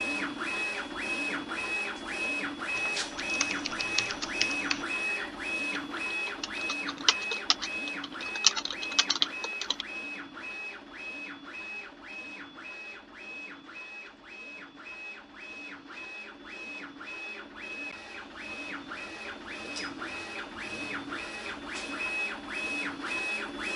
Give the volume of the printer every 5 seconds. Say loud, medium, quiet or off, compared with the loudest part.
loud, loud, medium, medium, loud.